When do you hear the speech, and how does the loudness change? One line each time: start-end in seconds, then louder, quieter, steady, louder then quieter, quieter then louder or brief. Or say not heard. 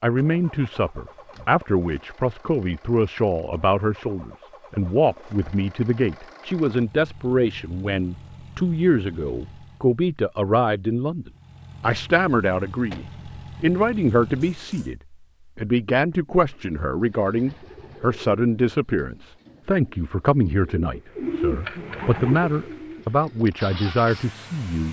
0.0-24.8 steady.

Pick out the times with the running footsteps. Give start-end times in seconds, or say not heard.
not heard.